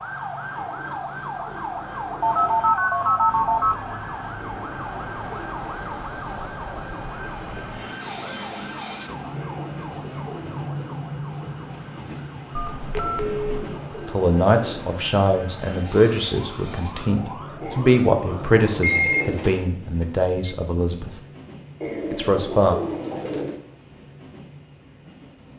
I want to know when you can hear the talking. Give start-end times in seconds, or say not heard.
14.1-21.1, 22.1-22.8.